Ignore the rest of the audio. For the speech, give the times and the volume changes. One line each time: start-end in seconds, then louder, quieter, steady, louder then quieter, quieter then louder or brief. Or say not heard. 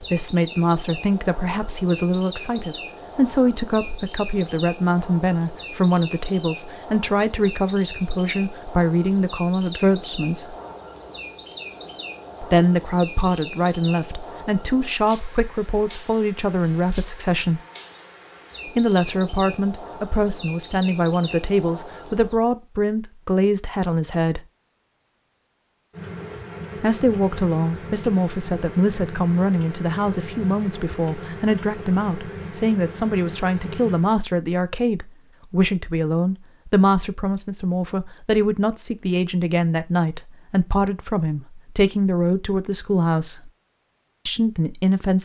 0.0-10.6 steady
12.4-17.6 steady
18.6-24.4 steady
26.8-43.5 steady
44.2-45.2 brief.